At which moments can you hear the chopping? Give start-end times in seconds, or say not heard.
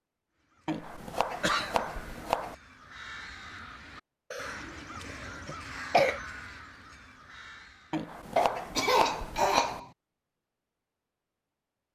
0.7-2.5, 7.9-9.8.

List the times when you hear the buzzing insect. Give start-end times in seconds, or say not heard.
not heard.